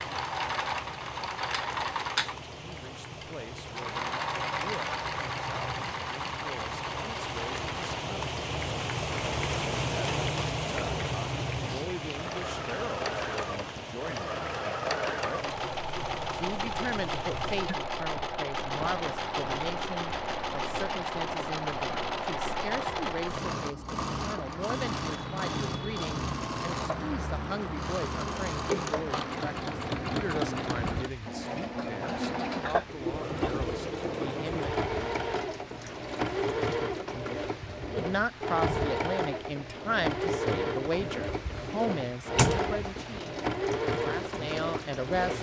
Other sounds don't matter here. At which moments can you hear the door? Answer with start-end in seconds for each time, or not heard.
41.5-42.7.